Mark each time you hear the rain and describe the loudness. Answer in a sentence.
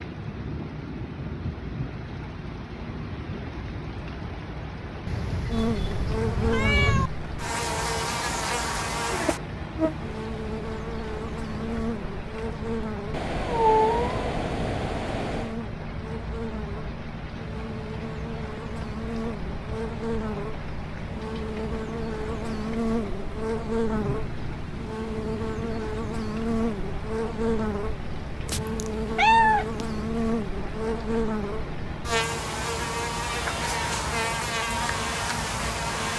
The rain can be heard from 0.0 to 36.1 s, at a steady volume.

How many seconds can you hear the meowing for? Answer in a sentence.
You can hear the meowing for 6 seconds altogether.